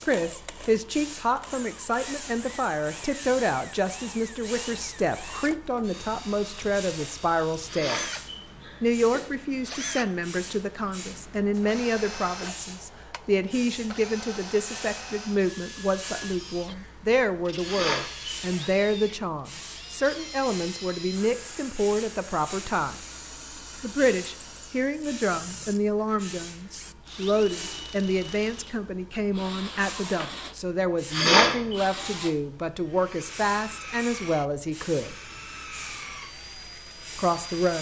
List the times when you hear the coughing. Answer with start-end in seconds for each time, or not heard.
7.7-9.2, 17.6-18.8, 31.1-31.8.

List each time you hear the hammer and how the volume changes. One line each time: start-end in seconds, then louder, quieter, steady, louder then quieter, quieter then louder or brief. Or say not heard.
not heard.